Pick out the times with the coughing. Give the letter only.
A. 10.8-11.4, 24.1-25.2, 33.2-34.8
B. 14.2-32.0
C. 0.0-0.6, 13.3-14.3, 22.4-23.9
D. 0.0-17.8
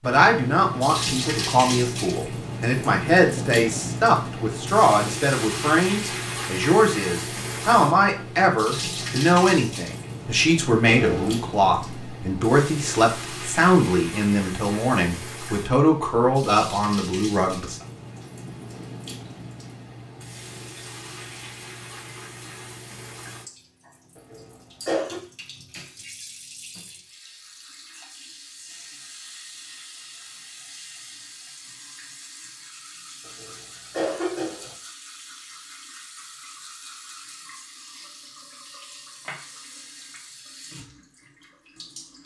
A.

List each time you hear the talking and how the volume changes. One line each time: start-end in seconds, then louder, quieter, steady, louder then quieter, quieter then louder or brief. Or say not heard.
0.0-17.8 steady.